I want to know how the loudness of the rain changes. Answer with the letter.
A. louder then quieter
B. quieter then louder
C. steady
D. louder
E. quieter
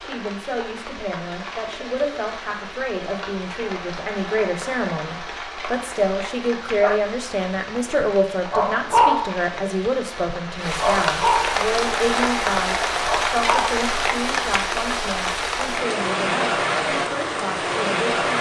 D.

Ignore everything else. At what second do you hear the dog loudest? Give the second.
9 s.